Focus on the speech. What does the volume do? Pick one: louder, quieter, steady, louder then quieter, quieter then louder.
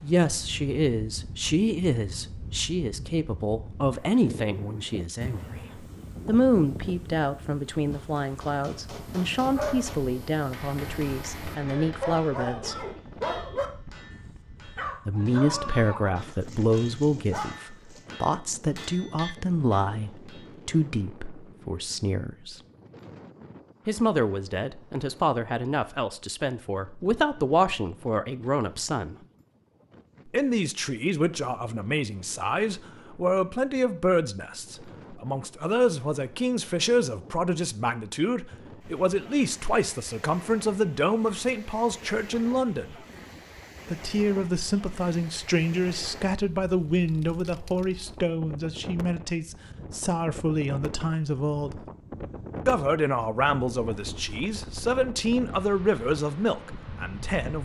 steady.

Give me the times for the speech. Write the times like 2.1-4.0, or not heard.
0.0-12.8, 15.1-22.6, 23.9-29.1, 30.3-43.0, 43.9-51.8, 52.6-57.5.